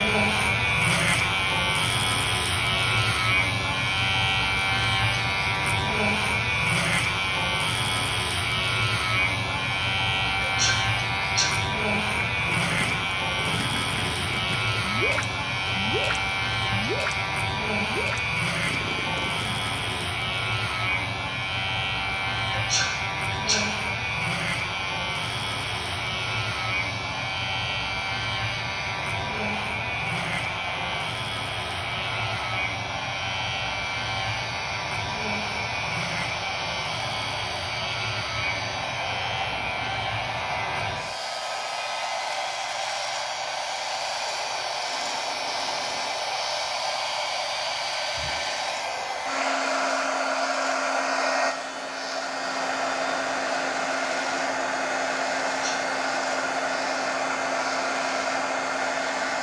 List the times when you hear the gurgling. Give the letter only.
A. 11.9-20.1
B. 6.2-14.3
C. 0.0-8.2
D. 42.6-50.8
A.